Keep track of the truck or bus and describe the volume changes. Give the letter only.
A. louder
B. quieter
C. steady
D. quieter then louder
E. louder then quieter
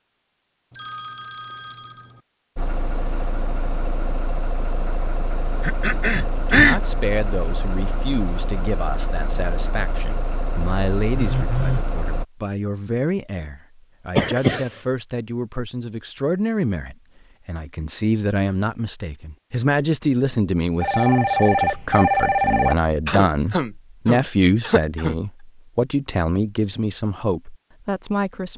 C.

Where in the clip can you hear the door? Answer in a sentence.
You can't hear the door here.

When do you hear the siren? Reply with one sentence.
You can't hear the siren here.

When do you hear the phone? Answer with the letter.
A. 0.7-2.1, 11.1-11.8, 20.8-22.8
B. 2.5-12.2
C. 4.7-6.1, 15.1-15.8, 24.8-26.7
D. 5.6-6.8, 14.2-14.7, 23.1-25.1
A.